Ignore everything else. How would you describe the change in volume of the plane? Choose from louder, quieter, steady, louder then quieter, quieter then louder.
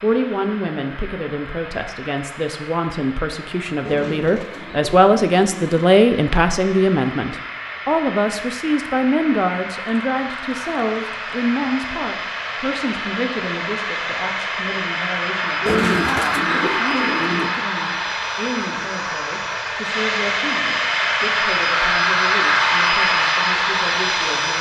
louder.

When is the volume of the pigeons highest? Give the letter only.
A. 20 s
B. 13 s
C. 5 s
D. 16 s
D.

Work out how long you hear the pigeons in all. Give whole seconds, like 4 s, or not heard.
4 s.